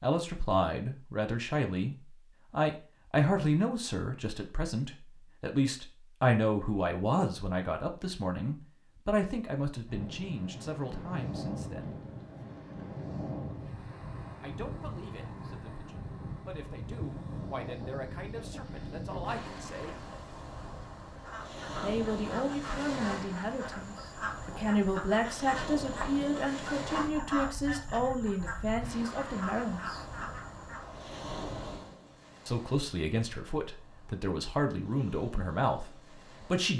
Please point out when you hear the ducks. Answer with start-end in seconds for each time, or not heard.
21.2-30.9.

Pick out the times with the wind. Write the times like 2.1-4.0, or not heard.
9.8-36.7.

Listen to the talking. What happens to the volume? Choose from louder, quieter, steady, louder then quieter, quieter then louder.
quieter then louder.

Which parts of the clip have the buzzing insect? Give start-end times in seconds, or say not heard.
not heard.